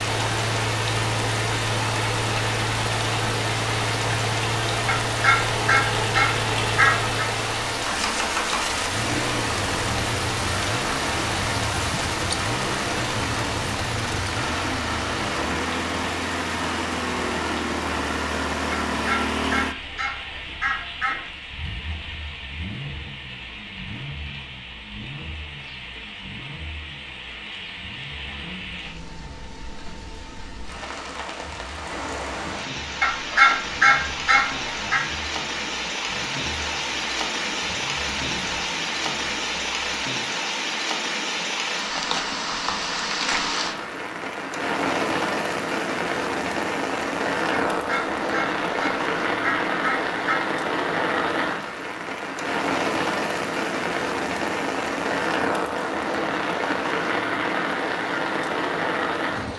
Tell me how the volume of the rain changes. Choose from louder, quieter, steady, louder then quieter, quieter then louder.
quieter then louder.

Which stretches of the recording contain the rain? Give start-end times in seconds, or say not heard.
0.0-59.5.